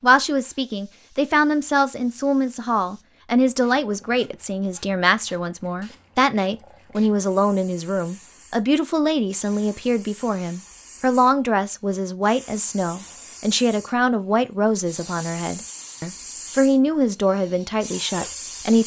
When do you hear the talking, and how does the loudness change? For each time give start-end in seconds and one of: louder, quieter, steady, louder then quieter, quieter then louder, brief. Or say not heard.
0.0-18.8 steady.